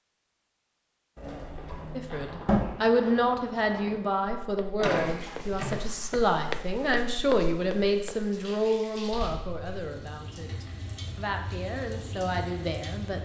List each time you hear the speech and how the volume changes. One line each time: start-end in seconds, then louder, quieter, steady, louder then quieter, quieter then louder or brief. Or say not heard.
1.9-13.2 quieter.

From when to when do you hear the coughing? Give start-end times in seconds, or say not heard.
not heard.